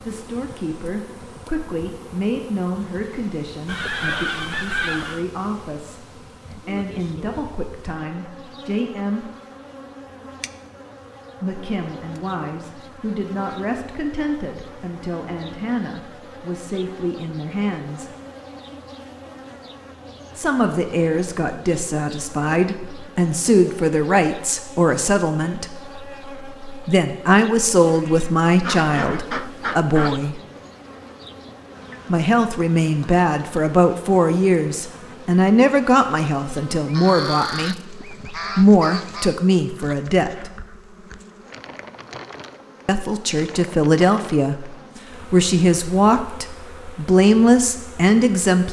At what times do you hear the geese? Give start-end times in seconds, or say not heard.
3.6-5.2, 28.6-30.3, 36.5-39.4.